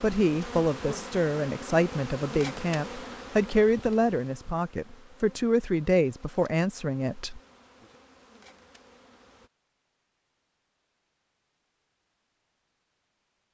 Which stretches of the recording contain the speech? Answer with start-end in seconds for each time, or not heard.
0.0-7.4.